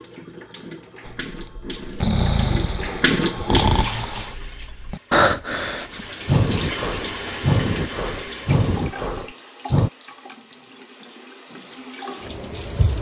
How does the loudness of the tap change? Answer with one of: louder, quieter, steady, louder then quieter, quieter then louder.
louder then quieter.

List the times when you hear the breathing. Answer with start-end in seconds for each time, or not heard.
1.1-9.9.